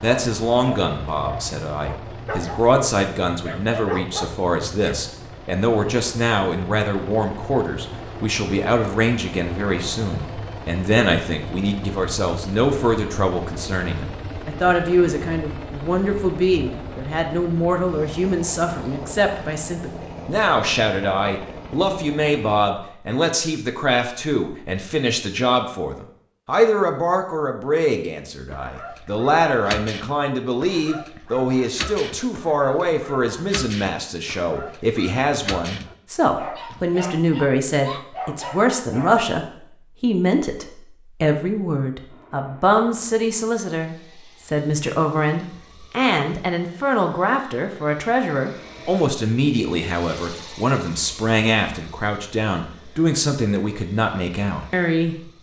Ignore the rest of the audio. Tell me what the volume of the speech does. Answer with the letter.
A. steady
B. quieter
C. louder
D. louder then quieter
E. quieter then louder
A.